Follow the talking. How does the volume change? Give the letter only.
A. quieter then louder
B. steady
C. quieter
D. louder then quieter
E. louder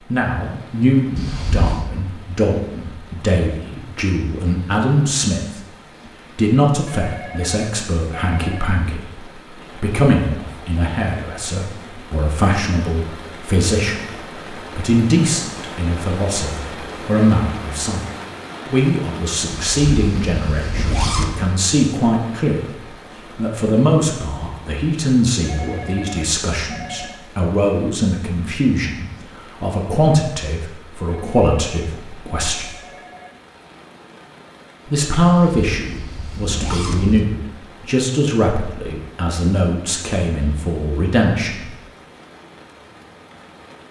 B.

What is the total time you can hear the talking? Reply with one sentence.
The talking can be heard for 39 seconds in total.